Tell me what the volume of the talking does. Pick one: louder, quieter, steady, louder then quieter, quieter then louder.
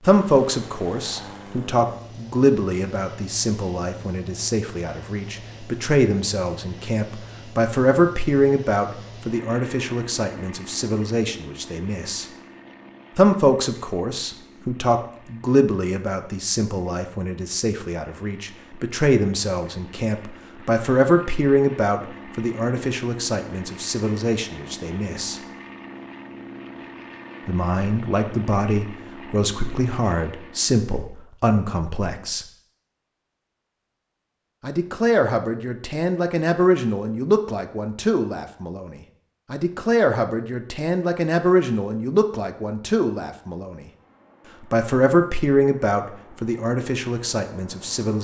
steady.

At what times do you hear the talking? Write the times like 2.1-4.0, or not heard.
0.0-12.2, 13.2-25.4, 27.4-32.5, 34.6-43.9, 44.6-48.1.